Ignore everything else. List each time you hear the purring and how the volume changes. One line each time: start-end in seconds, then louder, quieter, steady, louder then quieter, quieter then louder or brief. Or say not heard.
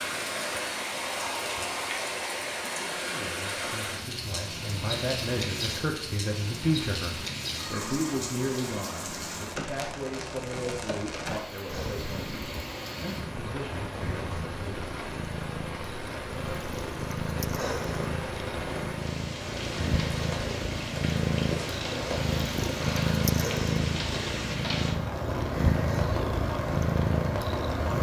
11.7-27.9 louder.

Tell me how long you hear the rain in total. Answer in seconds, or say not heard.
28 s.